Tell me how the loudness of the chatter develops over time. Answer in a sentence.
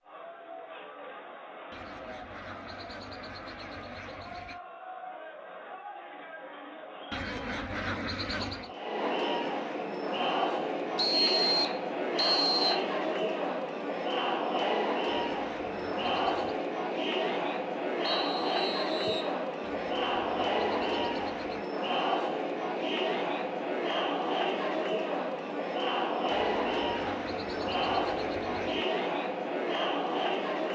The loudness of the chatter goes up.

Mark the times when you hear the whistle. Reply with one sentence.
You can hear the whistle from 10.9 to 12.8 s and from 18.1 to 19.3 s.